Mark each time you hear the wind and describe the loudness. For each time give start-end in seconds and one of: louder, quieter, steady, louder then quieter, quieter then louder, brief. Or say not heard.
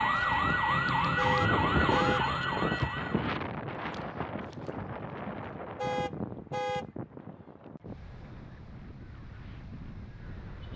0.0-10.7 quieter.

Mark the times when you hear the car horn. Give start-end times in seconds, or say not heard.
1.1-2.2, 5.8-6.8.